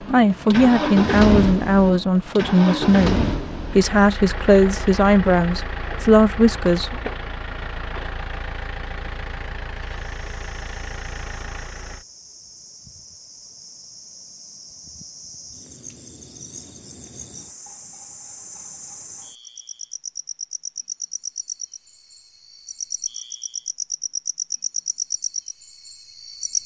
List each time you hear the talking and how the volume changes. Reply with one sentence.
The talking can be heard from 0.1 to 7.1 s, at a steady volume.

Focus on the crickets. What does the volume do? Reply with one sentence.
The loudness of the crickets goes up.